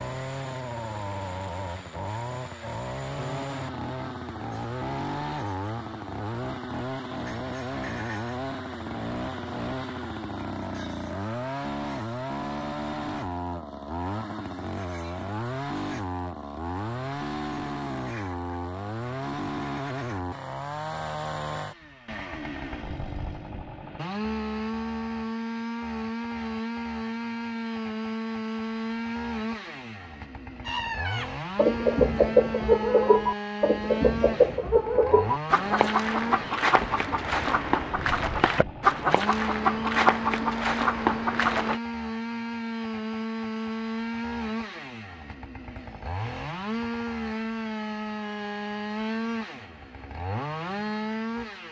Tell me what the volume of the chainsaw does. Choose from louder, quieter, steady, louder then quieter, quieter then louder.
steady.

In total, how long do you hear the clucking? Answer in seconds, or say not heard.
11 s.